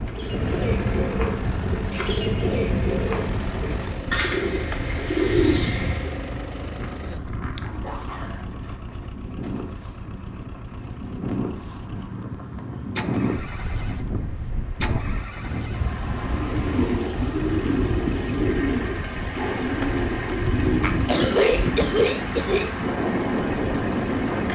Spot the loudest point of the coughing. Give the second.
21 s.